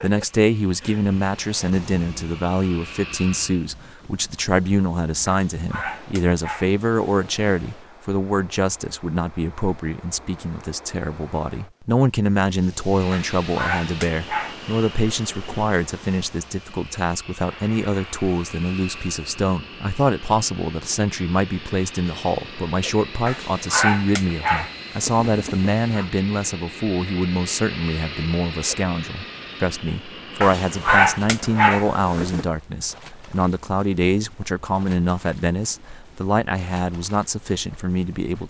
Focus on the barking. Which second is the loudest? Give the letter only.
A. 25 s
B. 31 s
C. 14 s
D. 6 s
B.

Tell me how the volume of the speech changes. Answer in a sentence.
The volume of the speech stays about the same.